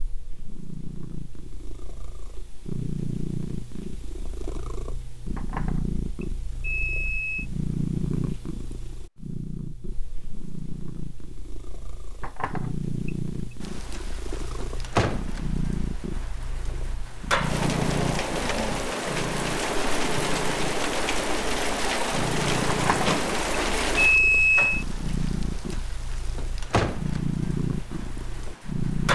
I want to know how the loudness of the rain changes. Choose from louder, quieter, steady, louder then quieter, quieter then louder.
louder then quieter.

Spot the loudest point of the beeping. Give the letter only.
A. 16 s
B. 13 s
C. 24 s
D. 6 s
C.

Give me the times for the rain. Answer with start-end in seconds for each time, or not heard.
13.6-29.1.